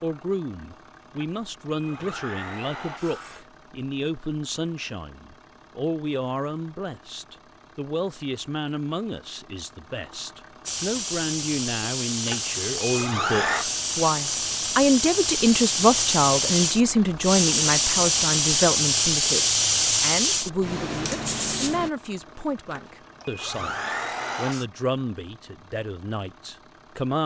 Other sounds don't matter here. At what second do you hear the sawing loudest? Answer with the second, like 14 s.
13 s.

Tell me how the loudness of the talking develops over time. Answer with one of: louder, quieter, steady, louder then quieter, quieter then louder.
louder then quieter.